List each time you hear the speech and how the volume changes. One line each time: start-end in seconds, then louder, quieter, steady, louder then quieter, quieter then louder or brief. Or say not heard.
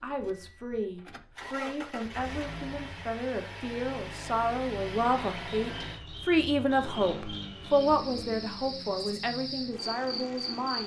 0.0-10.8 louder then quieter.